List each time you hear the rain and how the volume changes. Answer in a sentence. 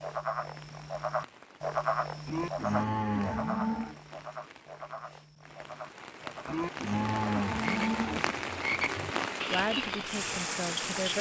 The rain can be heard from 0.0 to 11.1 s, getting louder.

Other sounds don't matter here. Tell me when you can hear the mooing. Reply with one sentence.
You can hear the mooing from 2.2 to 4.0 s and from 6.5 to 8.2 s.